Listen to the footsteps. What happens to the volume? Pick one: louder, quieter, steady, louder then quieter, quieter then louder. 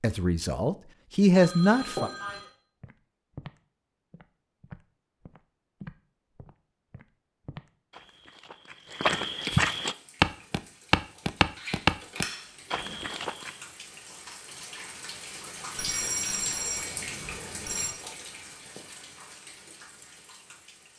louder.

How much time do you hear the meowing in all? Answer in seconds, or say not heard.
2 s.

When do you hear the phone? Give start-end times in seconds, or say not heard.
1.3-2.5, 15.8-17.9.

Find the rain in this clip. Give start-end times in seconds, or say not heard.
9.8-20.9.